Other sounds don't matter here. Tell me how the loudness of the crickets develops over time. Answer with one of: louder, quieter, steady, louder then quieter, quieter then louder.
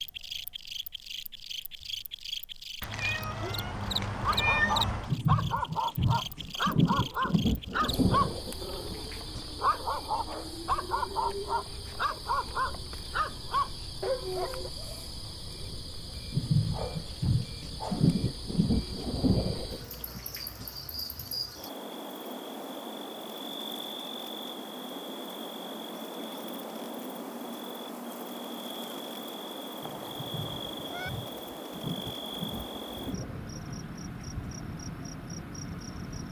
steady.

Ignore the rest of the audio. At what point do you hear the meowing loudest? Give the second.
5 s.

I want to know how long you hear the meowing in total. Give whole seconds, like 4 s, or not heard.
4 s.